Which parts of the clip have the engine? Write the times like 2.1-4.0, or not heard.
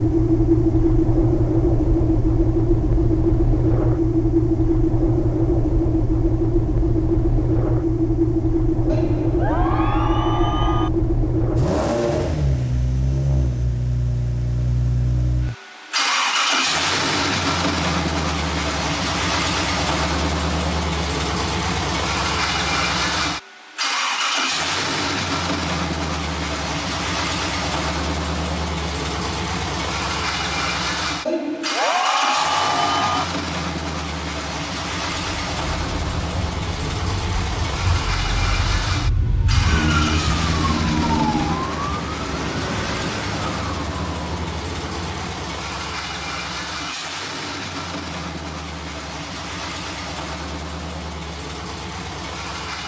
0.0-52.8.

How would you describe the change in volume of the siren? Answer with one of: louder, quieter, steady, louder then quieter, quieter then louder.
louder then quieter.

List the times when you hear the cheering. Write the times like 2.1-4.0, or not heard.
8.8-10.9, 31.2-33.2.